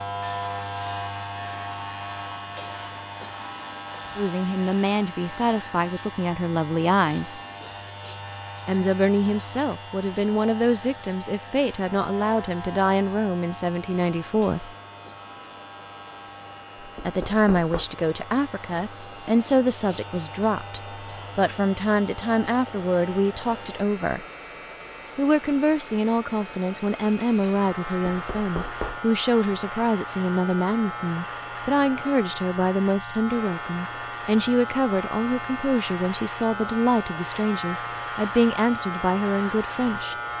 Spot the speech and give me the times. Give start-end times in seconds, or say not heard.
4.2-7.4, 8.7-14.7, 17.1-24.2, 25.1-40.1.